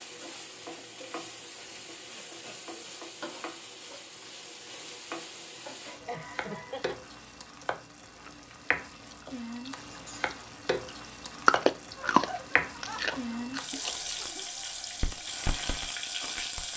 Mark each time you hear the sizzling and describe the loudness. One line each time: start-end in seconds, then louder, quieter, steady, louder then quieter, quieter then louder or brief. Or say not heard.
0.0-16.7 louder.